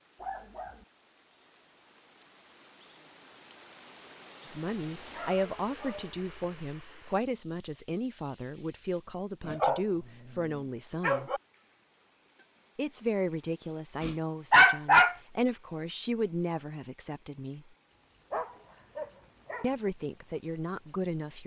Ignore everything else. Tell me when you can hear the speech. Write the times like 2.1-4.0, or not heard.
4.5-11.3, 12.8-17.6, 19.6-21.4.